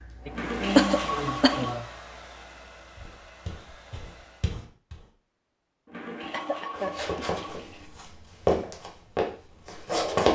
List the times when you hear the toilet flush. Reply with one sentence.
The toilet flush can be heard from 0.3 to 1.8 s and from 5.8 to 7.9 s.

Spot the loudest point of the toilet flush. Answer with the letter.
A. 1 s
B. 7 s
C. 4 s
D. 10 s
A.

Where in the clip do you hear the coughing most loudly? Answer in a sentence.
The loudest moment of the coughing is at 1 second.